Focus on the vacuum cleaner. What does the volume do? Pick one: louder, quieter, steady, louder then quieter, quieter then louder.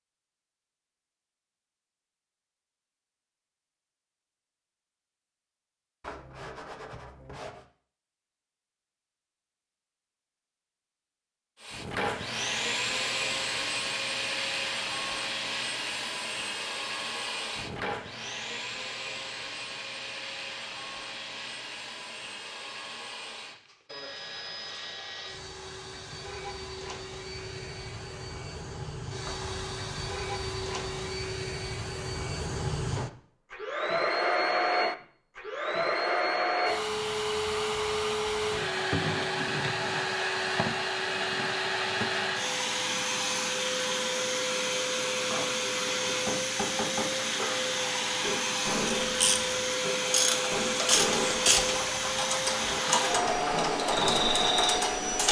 quieter then louder.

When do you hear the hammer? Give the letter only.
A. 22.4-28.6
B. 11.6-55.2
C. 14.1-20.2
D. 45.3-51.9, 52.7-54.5
D.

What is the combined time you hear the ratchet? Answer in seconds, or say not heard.
6 s.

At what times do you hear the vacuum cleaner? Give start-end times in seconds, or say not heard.
11.6-55.2.